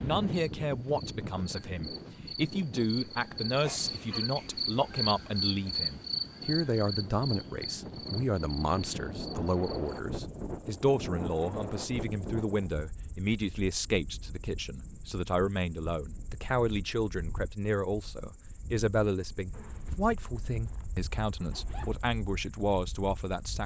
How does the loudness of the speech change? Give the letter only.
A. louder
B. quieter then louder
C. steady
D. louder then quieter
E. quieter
C.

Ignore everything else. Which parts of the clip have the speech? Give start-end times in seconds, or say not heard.
0.0-23.6.